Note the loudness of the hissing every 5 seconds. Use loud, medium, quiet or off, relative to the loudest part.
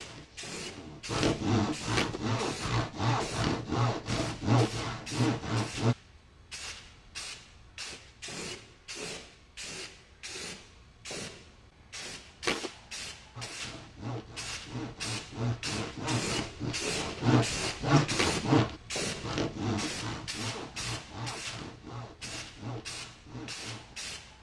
medium, medium, medium, loud, medium.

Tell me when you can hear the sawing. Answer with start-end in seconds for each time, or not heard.
0.0-6.0, 13.3-23.9.